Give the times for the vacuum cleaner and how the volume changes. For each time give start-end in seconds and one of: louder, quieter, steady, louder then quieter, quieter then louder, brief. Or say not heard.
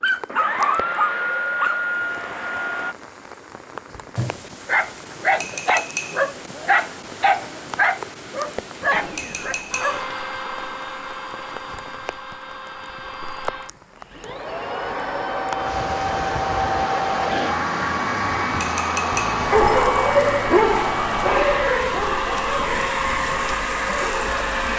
0.0-3.0 brief
8.9-24.7 louder.